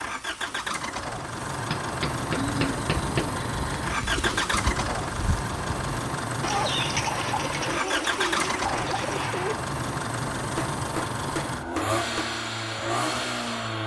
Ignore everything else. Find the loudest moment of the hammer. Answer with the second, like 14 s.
2 s.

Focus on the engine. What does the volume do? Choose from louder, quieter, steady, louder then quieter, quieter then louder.
steady.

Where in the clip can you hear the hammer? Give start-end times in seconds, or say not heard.
1.7-3.2, 10.6-12.4.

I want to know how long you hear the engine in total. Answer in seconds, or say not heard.
14 s.